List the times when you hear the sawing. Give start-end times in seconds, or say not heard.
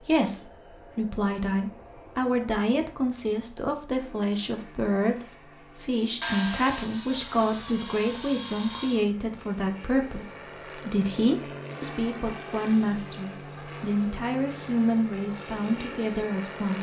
6.2-9.1.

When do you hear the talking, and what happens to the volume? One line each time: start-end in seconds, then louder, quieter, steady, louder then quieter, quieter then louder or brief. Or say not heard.
0.0-16.7 steady.